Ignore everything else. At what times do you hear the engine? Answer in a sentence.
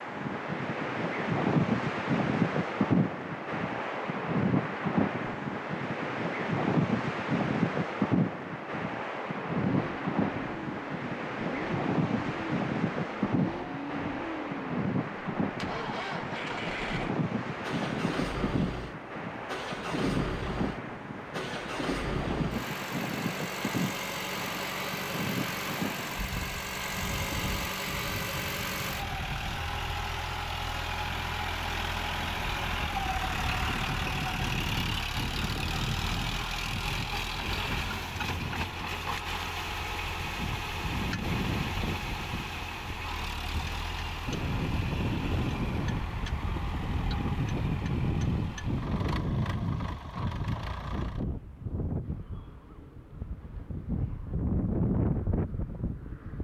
You can hear the engine from 9.6 to 51.2 s.